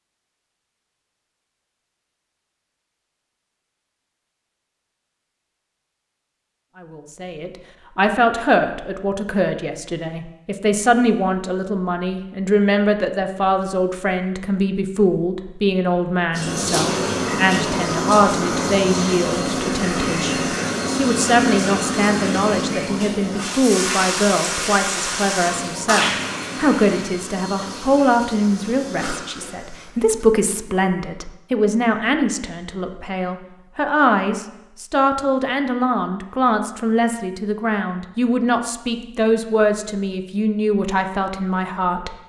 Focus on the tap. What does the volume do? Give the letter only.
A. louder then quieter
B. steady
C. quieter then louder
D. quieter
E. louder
D.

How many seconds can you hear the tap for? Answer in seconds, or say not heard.
14 s.